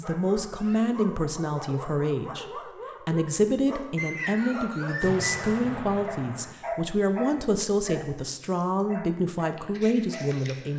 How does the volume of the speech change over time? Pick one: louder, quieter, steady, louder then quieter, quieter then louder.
steady.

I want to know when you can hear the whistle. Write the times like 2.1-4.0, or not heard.
4.0-5.5.